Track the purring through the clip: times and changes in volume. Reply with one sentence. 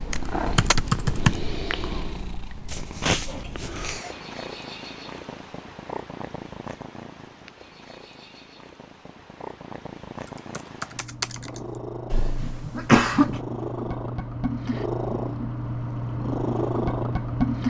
The purring can be heard from 0.0 to 17.6 s, getting quieter then louder.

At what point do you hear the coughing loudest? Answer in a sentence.
The loudest moment of the coughing is at 13 seconds.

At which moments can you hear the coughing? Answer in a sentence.
The coughing can be heard from 2.6 to 4.1 s and from 12.1 to 13.4 s.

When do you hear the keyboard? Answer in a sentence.
You can hear the keyboard from 0.1 to 1.4 s and from 10.2 to 11.6 s.